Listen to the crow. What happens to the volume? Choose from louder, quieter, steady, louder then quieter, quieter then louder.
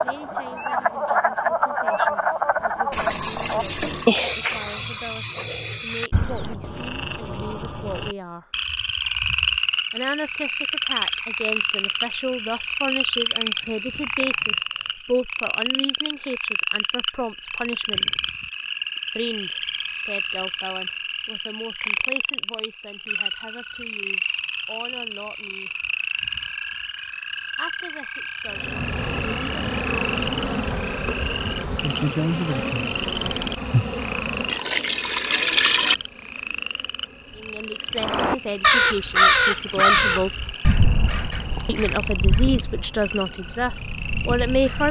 quieter.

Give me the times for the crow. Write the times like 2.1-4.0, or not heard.
38.0-44.8.